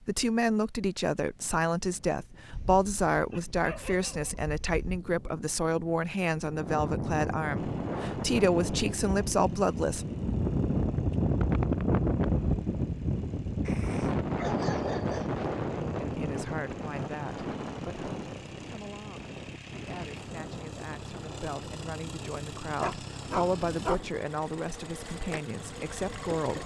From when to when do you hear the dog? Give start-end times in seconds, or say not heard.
2.5-5.0, 13.7-15.3, 22.8-23.9.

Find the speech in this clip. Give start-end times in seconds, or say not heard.
0.1-10.1, 16.0-26.6.